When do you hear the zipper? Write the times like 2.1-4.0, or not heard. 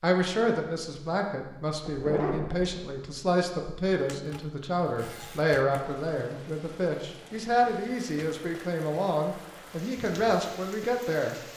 1.8-3.0.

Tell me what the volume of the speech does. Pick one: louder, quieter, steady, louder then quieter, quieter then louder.
steady.